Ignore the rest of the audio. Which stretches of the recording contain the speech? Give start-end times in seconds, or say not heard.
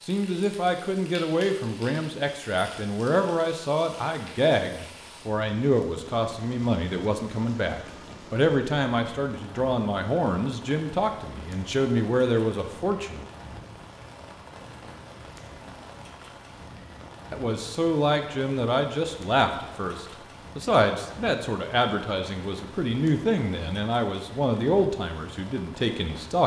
0.0-13.2, 17.3-26.4.